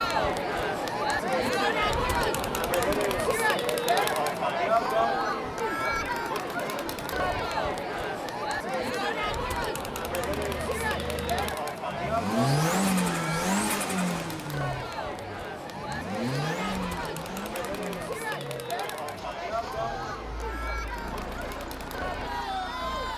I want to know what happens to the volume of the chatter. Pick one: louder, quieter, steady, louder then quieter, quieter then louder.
quieter.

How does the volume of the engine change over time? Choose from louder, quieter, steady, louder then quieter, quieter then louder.
quieter.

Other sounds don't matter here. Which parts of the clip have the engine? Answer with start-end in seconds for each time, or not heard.
10.1-23.1.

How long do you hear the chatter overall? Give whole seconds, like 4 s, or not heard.
23 s.